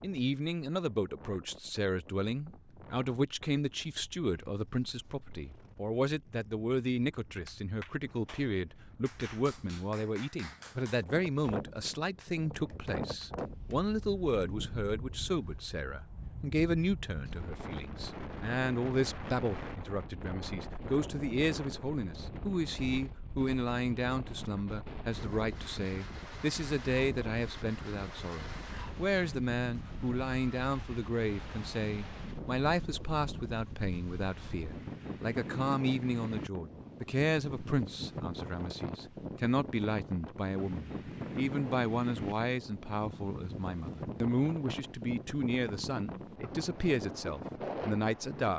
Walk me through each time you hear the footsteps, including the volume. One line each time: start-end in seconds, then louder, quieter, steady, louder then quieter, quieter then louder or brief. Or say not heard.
not heard.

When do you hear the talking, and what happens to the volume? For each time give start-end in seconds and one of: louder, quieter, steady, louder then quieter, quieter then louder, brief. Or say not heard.
0.0-48.5 steady.